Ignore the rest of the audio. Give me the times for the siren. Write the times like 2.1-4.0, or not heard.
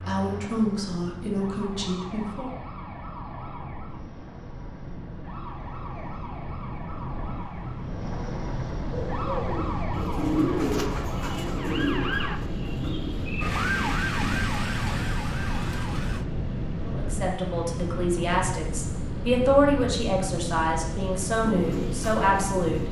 0.1-16.2.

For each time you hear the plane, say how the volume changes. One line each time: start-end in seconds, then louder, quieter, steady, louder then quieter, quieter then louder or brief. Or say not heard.
0.0-22.8 louder.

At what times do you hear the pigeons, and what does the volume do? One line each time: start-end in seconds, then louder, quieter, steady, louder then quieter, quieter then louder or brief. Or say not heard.
8.9-14.4 louder then quieter
21.4-22.8 brief.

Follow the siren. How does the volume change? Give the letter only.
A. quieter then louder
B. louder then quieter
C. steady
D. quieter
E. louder
E.